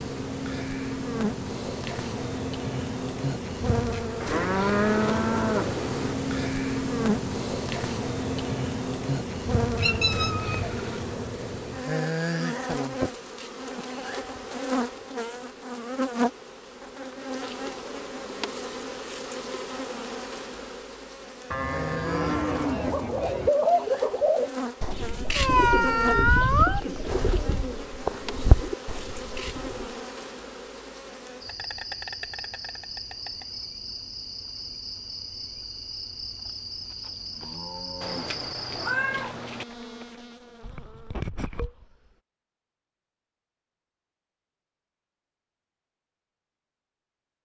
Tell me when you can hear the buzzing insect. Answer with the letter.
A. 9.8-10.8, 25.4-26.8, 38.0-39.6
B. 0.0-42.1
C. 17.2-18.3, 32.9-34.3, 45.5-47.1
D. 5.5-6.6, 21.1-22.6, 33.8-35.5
B.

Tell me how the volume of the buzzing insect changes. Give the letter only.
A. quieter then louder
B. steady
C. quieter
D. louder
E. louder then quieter
C.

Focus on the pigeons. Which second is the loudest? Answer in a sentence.
The volume of the pigeons peaks at 24 seconds.